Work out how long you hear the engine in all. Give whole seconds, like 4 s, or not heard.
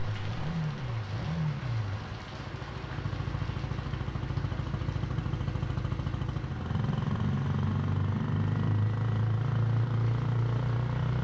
11 s.